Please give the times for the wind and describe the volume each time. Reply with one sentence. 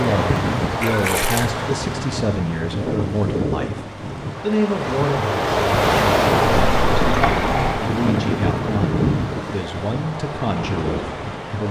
The wind can be heard from 0.0 to 11.6 s, getting louder then quieter.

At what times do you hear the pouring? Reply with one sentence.
The pouring can be heard from 0.8 to 1.5 s and from 6.6 to 7.8 s.